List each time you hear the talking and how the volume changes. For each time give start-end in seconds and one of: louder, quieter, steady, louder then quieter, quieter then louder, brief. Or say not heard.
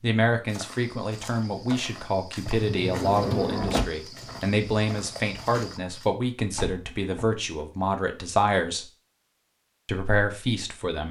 0.0-8.8 steady
9.8-11.0 brief.